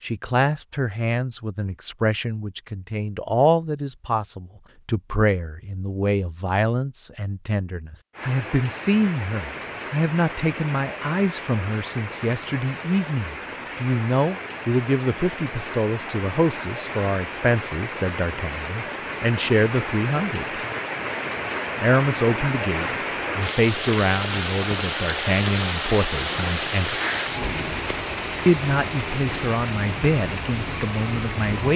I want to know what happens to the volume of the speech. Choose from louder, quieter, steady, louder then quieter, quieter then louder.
steady.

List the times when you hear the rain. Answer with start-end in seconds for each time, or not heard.
8.1-31.7.